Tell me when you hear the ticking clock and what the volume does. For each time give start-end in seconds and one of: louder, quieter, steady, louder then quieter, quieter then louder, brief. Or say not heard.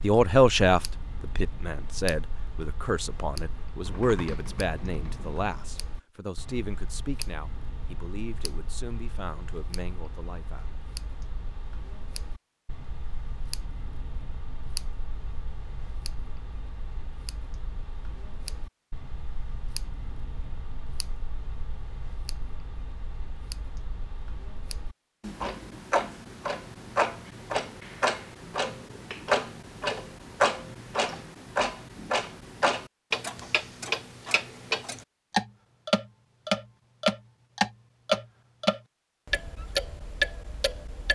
0.0-41.1 louder.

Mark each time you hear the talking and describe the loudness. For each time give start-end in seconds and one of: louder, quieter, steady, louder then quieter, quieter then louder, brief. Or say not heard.
0.0-10.7 quieter.